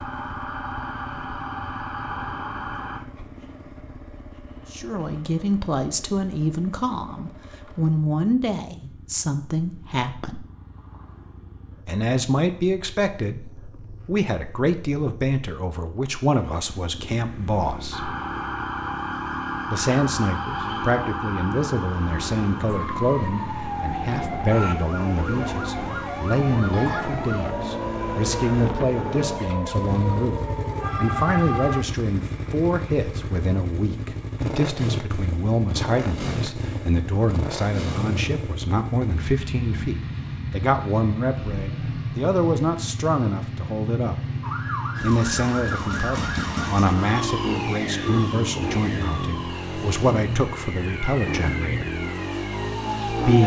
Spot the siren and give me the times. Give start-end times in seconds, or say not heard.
0.0-3.0, 17.9-31.9, 44.4-53.4.